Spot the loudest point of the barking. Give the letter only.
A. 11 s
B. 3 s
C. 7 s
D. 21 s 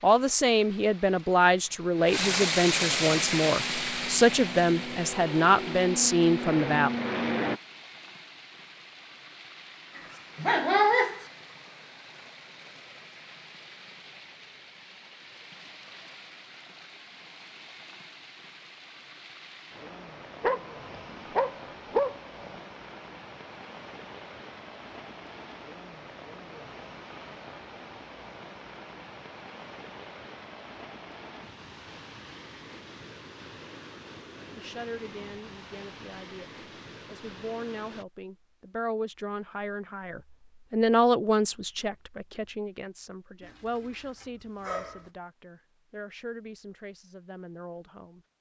A.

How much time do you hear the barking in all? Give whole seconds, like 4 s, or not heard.
5 s.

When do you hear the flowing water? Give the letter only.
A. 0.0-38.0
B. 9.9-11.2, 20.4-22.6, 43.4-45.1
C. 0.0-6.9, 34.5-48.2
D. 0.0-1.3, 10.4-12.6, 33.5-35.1
A.